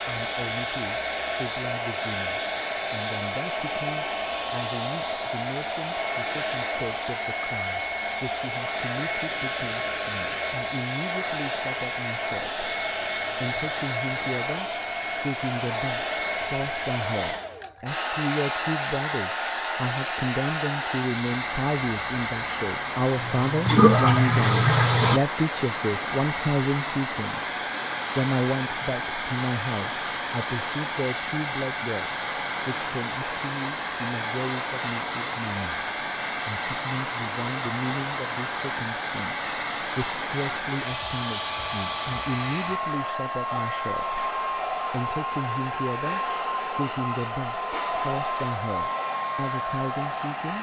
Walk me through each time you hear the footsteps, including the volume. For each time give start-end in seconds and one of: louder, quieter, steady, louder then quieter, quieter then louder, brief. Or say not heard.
not heard.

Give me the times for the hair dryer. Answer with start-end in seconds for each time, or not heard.
0.0-50.5.